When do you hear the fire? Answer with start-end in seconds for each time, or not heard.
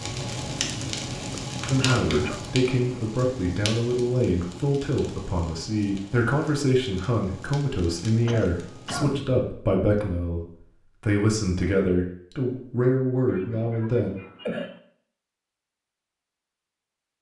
0.0-8.9.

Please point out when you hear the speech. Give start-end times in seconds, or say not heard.
1.7-10.4, 11.0-14.1.